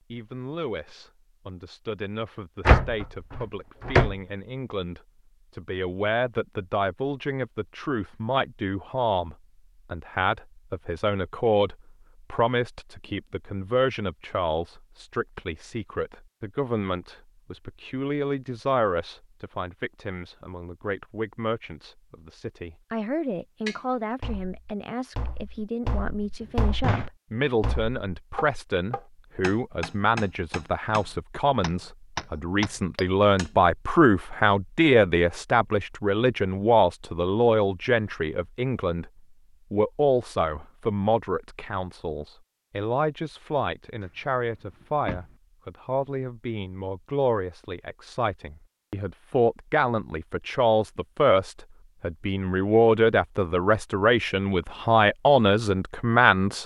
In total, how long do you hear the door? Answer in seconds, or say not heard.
3 s.